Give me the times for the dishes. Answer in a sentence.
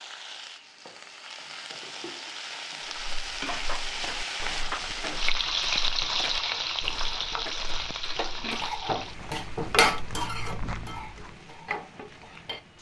You can hear the dishes from 3.5 to 12.7 s.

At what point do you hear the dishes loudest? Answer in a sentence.
The volume of the dishes peaks at 10 seconds.